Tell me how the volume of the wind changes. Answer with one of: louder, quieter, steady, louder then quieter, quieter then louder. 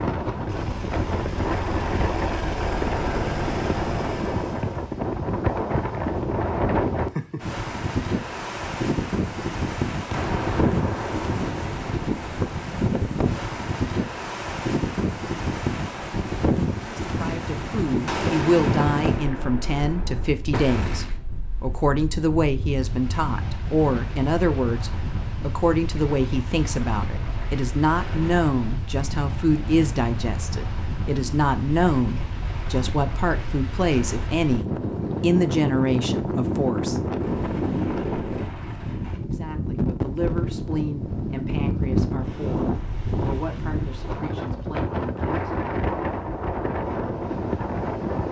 quieter then louder.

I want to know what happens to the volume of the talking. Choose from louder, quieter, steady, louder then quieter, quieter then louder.
quieter.